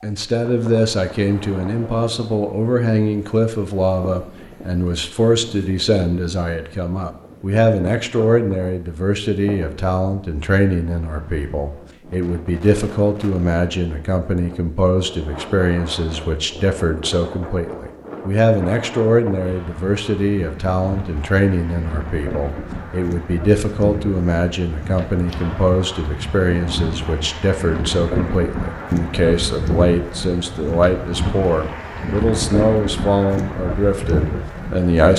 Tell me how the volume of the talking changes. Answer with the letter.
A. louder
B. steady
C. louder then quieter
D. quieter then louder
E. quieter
B.